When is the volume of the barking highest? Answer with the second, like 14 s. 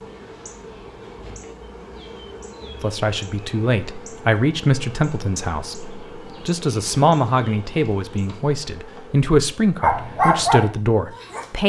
10 s.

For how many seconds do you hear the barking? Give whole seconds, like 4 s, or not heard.
2 s.